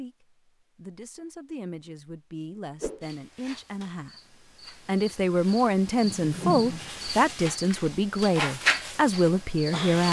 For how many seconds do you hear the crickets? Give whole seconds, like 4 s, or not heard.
7 s.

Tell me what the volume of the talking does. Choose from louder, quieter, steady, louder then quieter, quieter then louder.
louder.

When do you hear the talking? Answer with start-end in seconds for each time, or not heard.
0.0-4.1, 4.7-10.0.